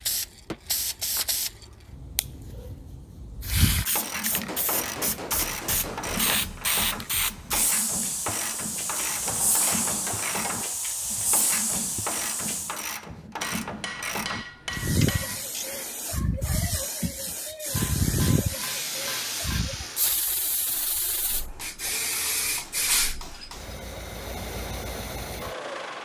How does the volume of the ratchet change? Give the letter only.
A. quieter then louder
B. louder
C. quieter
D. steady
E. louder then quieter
D.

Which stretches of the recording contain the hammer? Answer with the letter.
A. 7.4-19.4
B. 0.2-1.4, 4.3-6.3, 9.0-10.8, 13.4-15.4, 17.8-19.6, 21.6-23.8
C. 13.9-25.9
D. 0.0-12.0
B.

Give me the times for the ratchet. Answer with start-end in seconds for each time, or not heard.
3.8-15.8.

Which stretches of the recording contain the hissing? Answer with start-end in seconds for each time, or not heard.
0.0-12.8, 14.7-23.5.